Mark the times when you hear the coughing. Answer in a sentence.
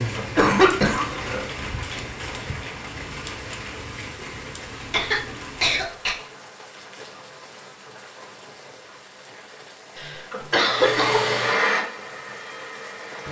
You can hear the coughing from 0.1 to 1.4 s, from 4.9 to 6.2 s and from 9.9 to 11.2 s.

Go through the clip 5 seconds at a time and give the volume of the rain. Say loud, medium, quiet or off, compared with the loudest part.
loud, medium, medium.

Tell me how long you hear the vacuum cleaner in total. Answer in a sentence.
The vacuum cleaner can be heard for 3 seconds in total.